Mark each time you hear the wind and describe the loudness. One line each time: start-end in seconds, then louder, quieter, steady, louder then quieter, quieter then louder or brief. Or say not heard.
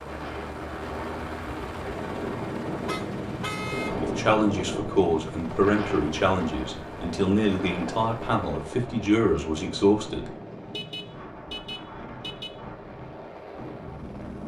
0.0-14.4 quieter.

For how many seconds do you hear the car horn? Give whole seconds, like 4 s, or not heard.
3 s.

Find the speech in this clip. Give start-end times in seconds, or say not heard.
3.9-10.3.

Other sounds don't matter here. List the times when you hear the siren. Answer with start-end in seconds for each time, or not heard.
not heard.